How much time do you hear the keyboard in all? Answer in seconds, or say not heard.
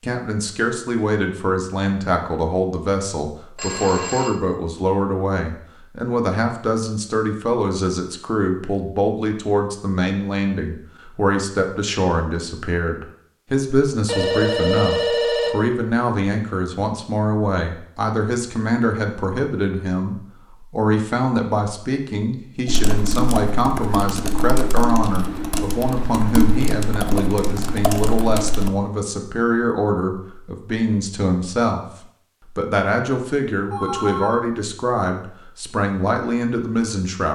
6 s.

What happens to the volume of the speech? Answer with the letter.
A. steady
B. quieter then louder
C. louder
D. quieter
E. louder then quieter
A.